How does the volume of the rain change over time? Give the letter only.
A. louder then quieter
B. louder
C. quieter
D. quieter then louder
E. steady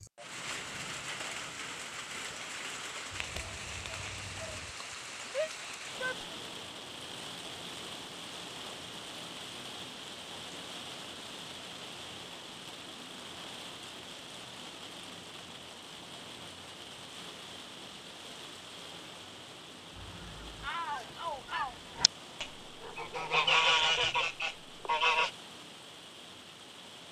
C.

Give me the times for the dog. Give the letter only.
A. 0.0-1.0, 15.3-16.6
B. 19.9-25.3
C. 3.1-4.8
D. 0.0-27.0
C.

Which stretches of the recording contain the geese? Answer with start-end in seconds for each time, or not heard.
19.9-25.3.